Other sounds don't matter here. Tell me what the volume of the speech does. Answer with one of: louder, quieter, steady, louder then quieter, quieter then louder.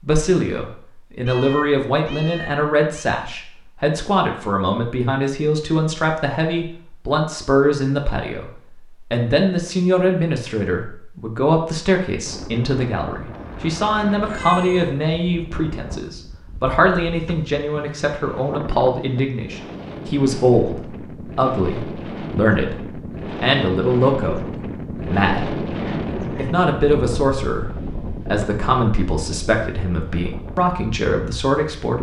steady.